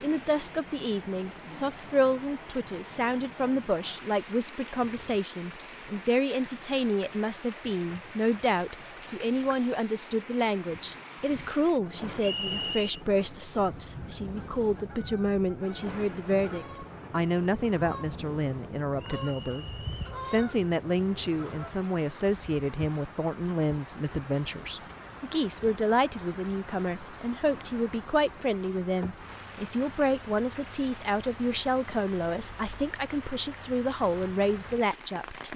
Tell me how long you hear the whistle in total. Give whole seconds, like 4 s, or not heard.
2 s.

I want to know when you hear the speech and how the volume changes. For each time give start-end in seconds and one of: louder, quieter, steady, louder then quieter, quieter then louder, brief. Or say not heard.
0.0-35.5 steady.